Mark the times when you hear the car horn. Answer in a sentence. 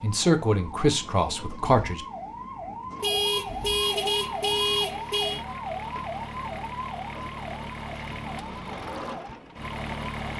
You can hear the car horn from 3.0 to 5.5 s.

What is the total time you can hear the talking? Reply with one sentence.
The talking can be heard for 2 seconds in total.